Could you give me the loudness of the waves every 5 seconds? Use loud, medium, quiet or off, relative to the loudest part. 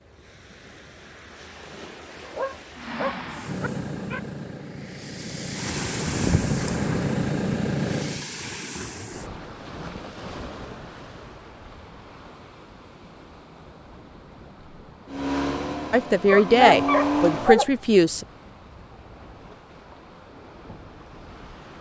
quiet, loud, medium, quiet, quiet.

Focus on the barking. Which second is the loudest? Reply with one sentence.
The loudest moment of the barking is at 17 seconds.